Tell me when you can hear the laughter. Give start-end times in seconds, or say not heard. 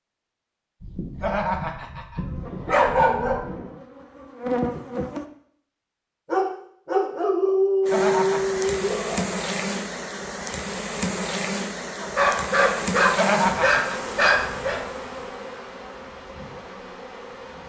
1.2-2.2, 7.9-8.6, 13.2-14.0.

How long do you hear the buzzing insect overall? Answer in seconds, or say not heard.
13 s.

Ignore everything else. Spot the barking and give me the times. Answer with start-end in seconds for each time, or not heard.
0.8-3.5, 6.2-9.2, 12.0-14.8.